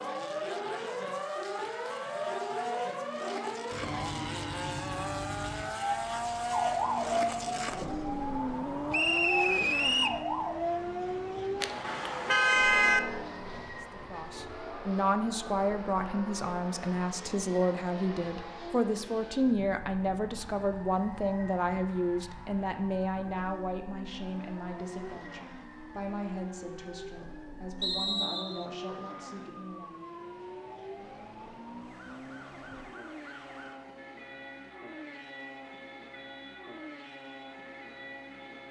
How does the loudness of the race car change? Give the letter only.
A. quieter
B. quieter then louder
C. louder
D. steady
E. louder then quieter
A.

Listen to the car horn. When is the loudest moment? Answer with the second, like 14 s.
13 s.